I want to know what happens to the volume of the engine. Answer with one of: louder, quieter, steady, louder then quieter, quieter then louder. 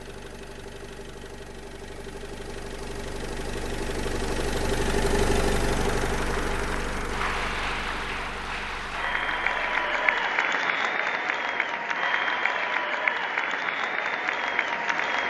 louder then quieter.